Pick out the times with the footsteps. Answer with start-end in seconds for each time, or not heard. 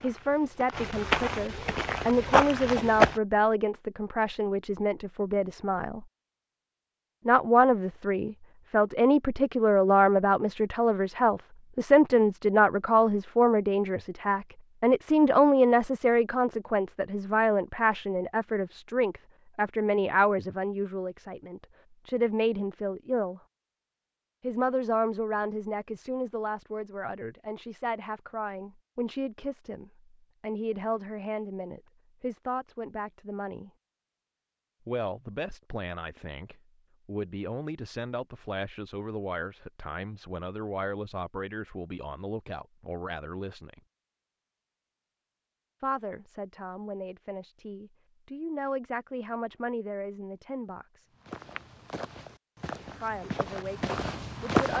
0.0-3.2, 51.2-54.7.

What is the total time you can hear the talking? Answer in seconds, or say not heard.
48 s.